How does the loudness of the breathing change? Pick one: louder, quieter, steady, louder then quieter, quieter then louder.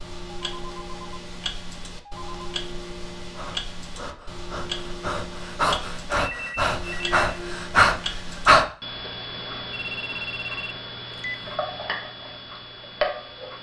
louder.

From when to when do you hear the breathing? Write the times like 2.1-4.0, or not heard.
3.4-8.7.